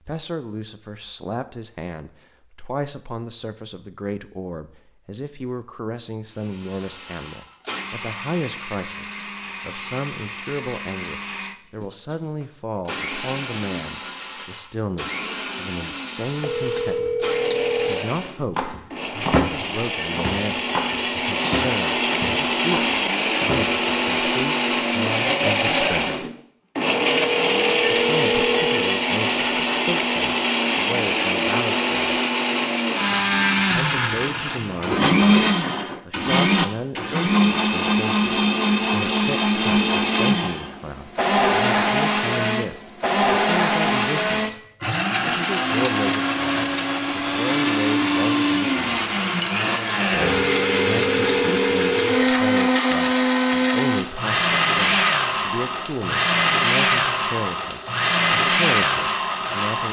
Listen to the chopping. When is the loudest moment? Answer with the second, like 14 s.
19 s.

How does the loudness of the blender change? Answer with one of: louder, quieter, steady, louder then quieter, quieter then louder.
louder.